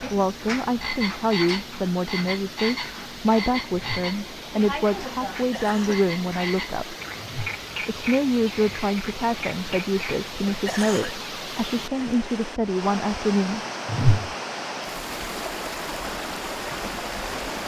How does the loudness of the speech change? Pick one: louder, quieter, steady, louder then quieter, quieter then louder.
steady.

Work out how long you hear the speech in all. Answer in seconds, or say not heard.
13 s.